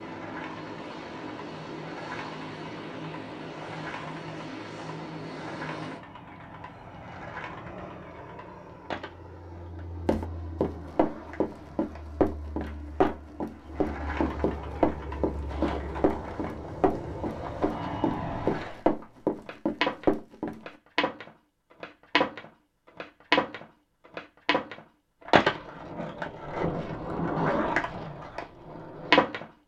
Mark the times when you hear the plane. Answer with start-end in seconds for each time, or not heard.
0.0-18.6.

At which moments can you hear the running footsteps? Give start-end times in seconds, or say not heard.
10.1-20.6.